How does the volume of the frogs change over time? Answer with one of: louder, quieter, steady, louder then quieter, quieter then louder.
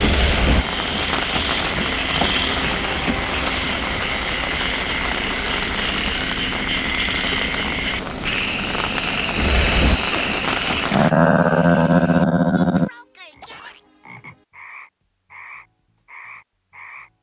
quieter.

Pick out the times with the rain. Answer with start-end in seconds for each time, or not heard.
0.0-11.1.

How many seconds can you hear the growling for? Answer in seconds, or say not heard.
2 s.